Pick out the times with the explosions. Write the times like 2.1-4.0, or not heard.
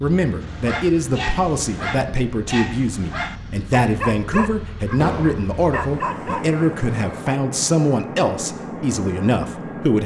5.0-5.5.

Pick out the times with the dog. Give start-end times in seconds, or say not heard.
0.4-7.4.